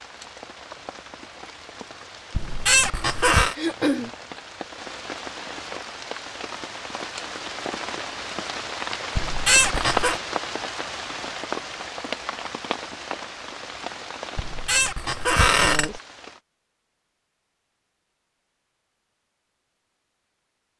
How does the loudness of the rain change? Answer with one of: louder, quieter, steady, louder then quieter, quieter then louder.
louder then quieter.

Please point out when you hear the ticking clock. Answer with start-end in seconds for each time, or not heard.
not heard.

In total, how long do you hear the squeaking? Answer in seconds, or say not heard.
4 s.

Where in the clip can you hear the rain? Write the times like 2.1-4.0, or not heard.
0.0-16.4.